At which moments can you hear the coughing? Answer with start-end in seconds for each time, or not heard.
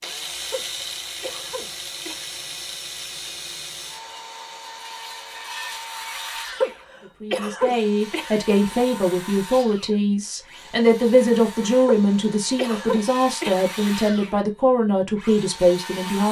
0.4-2.3, 6.5-8.3, 11.8-13.7.